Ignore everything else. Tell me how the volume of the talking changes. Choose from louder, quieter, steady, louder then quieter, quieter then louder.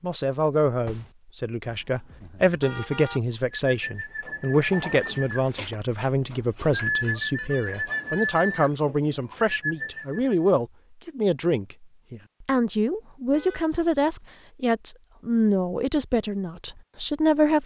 steady.